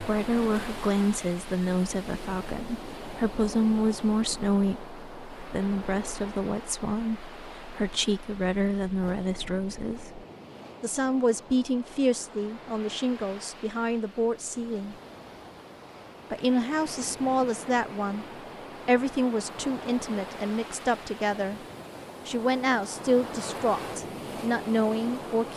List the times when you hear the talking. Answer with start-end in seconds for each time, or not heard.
0.0-14.9, 16.3-18.2, 18.9-21.6, 22.2-25.5.